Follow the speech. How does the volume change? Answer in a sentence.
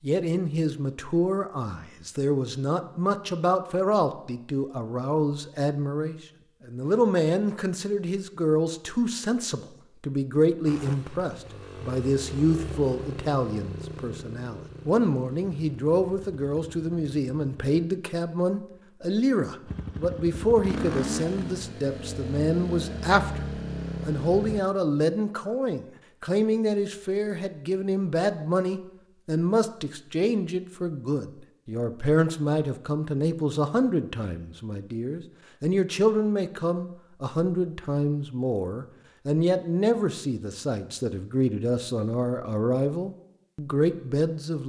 The volume of the speech stays about the same.